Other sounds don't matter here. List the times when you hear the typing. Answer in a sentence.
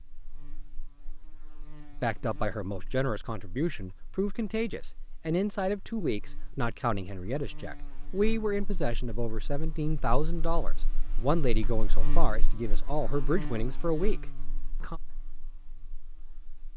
The typing can't be heard in this clip.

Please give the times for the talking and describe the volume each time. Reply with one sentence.
You can hear the talking from 1.9 to 15.0 s, at a steady volume.